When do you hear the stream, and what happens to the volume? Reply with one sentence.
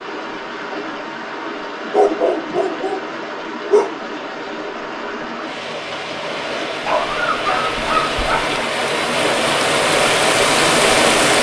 You can hear the stream from 0.0 to 11.3 s, getting louder.